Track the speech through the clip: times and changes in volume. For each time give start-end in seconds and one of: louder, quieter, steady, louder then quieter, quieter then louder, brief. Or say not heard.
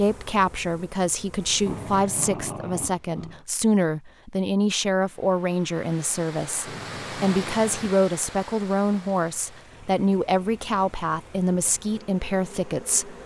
0.0-13.2 steady.